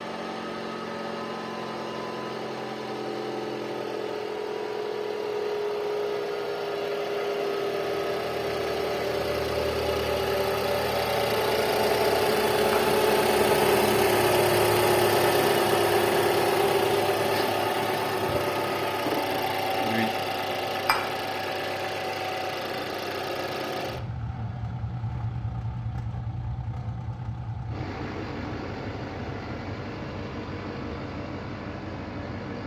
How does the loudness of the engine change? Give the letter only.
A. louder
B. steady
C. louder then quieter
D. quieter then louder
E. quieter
C.